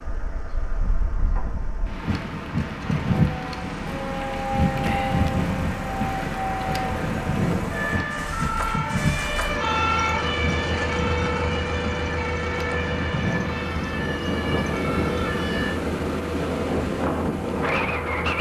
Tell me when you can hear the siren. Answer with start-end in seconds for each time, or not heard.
3.1-15.8.